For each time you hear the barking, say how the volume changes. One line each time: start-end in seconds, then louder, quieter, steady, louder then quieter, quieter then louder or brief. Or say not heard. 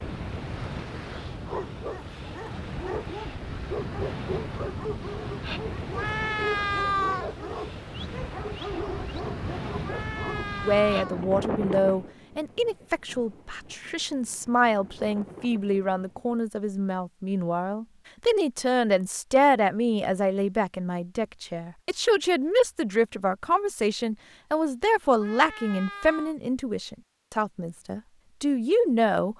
1.4-10.6 steady.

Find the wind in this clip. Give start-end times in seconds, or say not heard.
0.0-16.4.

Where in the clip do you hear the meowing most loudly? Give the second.
7 s.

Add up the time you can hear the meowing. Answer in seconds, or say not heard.
4 s.